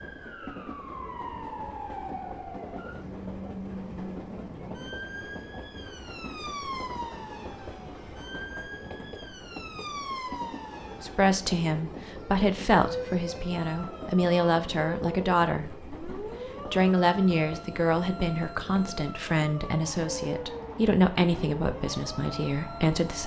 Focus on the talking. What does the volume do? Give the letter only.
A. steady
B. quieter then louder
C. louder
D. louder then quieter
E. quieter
A.